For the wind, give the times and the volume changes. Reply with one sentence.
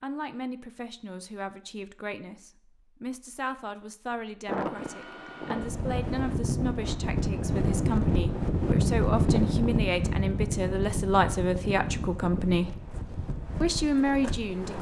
The wind can be heard from 4.5 to 14.7 s, getting louder then quieter.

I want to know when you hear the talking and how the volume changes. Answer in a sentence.
You can hear the talking from 0.0 to 12.8 s, getting louder; and briefly from 13.6 to 14.7 s.